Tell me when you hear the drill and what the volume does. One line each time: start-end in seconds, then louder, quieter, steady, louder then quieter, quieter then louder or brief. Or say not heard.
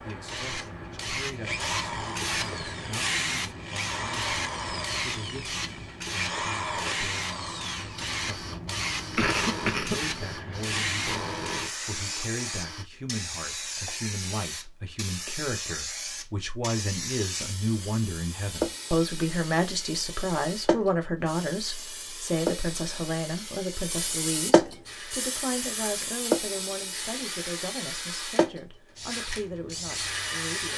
0.0-12.8 steady
24.9-30.7 louder.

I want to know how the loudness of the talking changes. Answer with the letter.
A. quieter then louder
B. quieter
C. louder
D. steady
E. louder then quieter
E.